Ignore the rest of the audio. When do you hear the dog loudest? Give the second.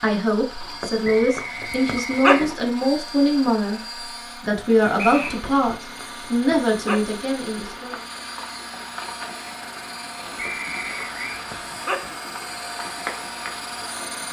2 s.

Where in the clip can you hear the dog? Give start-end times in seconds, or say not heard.
0.6-2.5, 5.3-7.0, 10.3-12.2.